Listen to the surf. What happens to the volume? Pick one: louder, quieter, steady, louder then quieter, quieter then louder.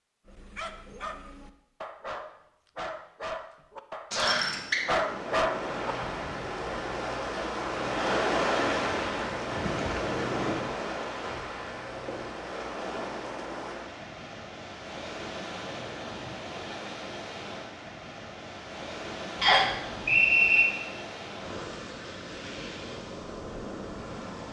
quieter.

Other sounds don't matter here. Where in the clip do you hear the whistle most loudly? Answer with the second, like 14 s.
20 s.